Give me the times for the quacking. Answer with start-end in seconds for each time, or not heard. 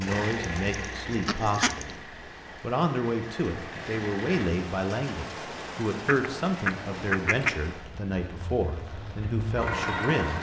0.0-1.9, 6.0-7.6.